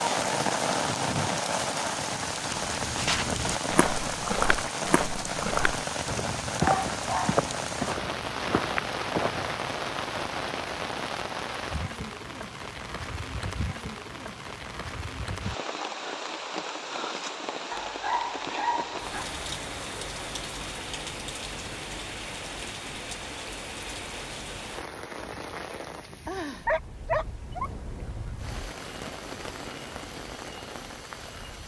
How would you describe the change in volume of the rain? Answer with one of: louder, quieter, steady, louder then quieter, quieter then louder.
quieter.